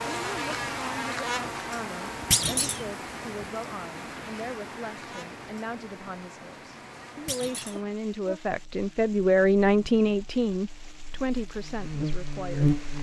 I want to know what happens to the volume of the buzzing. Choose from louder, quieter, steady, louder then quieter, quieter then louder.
quieter then louder.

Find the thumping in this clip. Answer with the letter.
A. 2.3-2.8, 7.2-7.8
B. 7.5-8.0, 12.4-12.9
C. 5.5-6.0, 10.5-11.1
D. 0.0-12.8
A.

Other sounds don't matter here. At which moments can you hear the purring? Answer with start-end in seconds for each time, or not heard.
not heard.